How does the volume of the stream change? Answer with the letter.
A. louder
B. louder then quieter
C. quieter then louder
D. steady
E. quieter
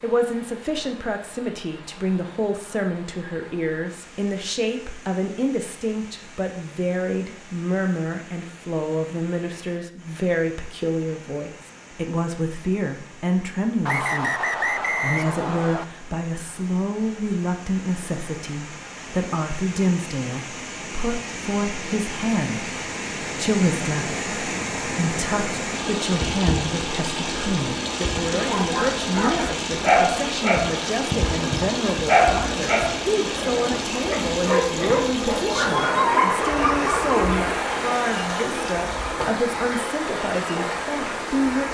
A.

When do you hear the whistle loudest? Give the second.
15 s.